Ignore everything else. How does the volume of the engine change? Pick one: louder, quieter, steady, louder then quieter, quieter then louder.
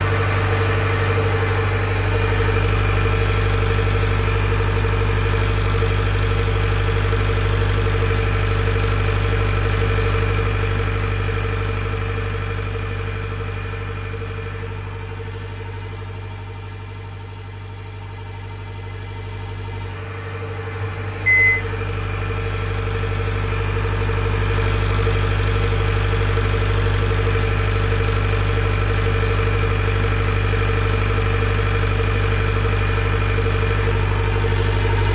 quieter then louder.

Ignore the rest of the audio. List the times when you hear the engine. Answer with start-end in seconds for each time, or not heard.
0.0-35.1.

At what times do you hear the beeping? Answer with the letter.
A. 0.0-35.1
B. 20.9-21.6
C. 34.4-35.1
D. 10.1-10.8
B.